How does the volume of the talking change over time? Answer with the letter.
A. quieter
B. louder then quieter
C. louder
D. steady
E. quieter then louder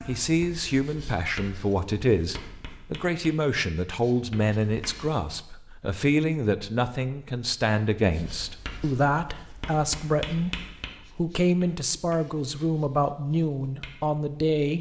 D.